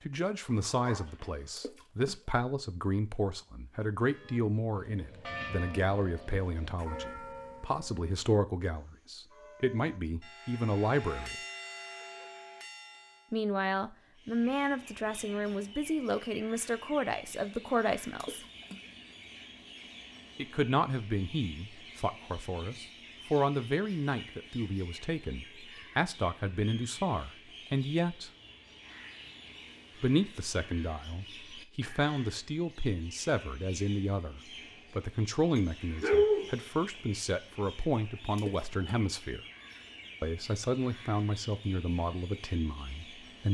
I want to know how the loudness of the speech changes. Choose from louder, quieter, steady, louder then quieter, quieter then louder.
steady.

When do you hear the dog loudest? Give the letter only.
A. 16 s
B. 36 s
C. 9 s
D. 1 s
B.